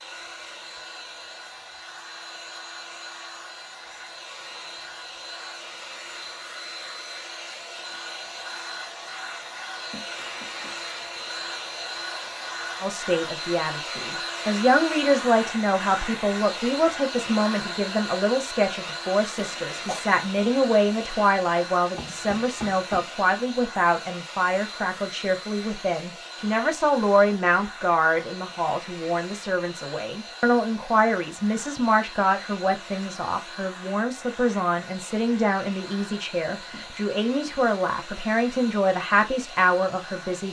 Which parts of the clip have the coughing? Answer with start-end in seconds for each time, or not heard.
19.4-20.0.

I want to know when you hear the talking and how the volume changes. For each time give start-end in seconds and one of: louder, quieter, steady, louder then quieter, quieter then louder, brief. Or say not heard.
12.8-40.4 steady.